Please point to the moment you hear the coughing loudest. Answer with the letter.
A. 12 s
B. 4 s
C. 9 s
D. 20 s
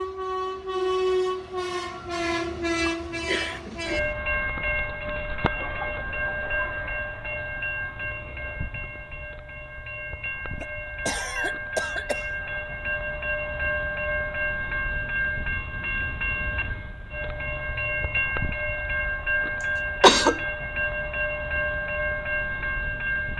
D.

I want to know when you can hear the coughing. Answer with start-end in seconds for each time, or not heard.
2.9-4.2, 10.6-12.2, 19.6-20.4.